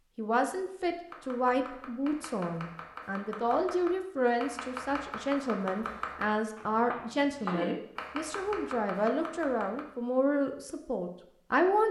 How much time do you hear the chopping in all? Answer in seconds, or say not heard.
9 s.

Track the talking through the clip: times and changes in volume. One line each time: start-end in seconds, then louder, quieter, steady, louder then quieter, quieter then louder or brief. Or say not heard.
0.1-11.8 steady.